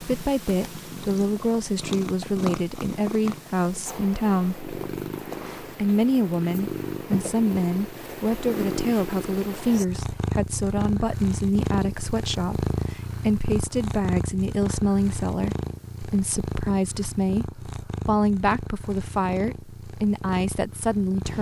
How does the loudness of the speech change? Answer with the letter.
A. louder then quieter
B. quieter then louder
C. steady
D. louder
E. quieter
C.